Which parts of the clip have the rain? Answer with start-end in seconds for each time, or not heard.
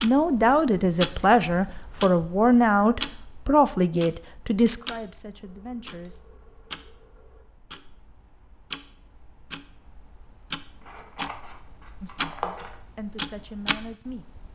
not heard.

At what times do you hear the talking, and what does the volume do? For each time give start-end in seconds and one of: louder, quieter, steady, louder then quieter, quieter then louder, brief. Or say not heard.
0.0-6.2 quieter
12.0-14.2 brief.